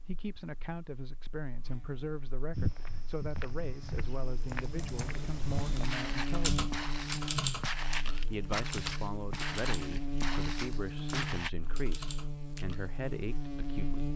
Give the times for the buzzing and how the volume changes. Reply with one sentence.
The buzzing can be heard from 0.0 to 14.1 s, getting louder.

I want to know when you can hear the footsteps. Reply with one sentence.
The footsteps can be heard from 2.5 to 11.5 s.